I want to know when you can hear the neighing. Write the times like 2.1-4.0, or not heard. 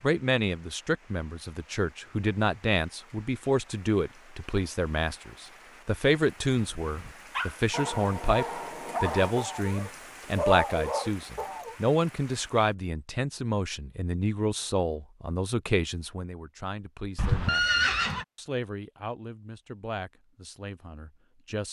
17.1-18.2.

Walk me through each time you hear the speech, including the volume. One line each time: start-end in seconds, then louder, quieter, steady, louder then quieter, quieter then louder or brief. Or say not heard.
0.0-21.6 quieter.